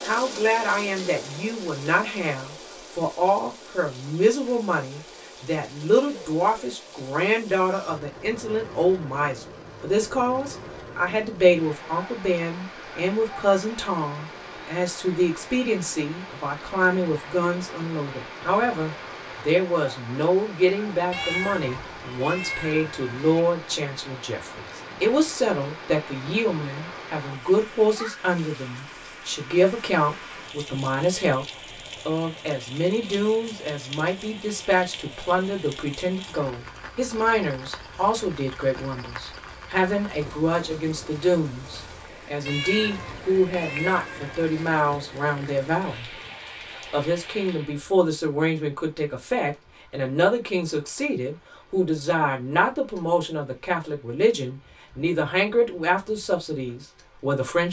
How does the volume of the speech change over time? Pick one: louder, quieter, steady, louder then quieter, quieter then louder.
steady.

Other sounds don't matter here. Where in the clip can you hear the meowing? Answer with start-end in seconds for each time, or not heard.
21.1-23.4, 42.5-44.5.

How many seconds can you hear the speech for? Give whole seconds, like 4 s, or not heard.
56 s.